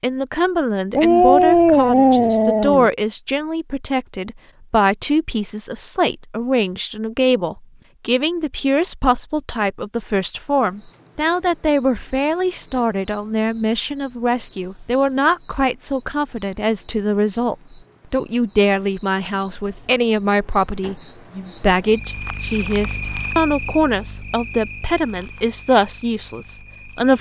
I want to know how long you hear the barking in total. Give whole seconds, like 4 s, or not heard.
2 s.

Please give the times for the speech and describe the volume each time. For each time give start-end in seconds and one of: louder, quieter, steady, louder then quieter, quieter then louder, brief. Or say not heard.
0.0-27.1 steady.